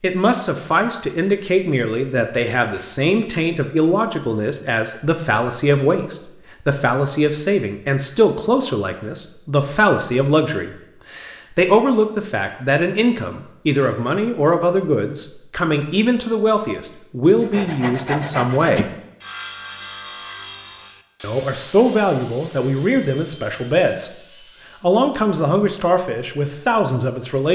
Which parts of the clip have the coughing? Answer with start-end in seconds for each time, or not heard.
not heard.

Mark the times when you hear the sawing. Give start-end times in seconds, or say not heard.
17.4-24.9.